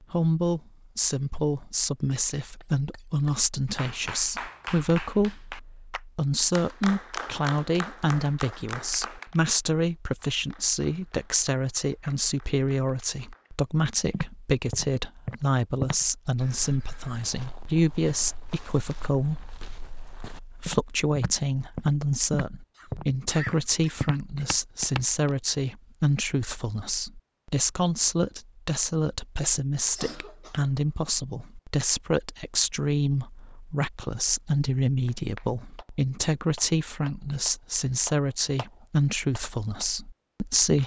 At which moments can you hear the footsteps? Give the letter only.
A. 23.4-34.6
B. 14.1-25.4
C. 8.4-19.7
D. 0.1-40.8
B.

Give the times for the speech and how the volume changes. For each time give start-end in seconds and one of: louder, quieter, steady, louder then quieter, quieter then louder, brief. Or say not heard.
0.1-40.8 steady.